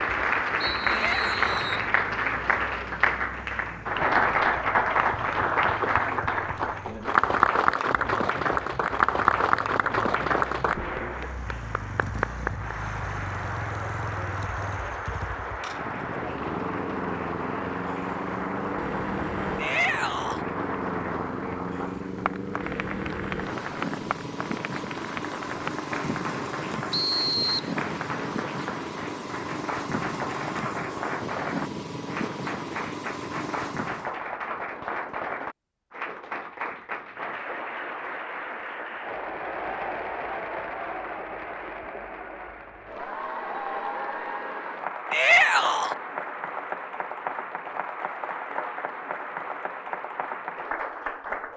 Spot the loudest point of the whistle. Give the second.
27 s.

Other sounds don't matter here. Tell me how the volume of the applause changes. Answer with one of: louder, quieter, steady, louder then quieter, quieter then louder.
quieter.